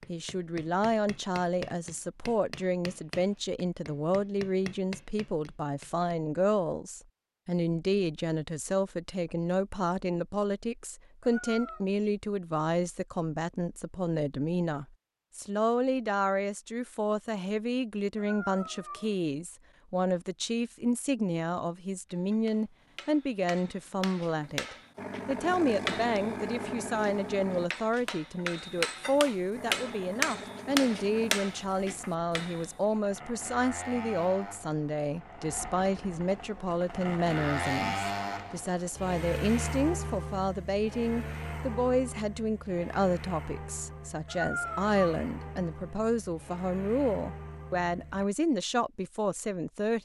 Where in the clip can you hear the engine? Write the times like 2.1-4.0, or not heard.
24.9-27.7, 29.5-48.2.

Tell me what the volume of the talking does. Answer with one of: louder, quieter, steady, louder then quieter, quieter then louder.
steady.